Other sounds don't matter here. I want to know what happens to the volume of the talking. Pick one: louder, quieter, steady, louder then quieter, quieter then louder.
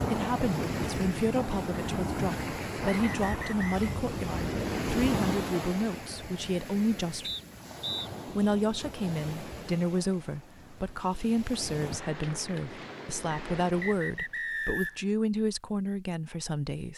steady.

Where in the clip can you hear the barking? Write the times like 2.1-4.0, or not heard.
not heard.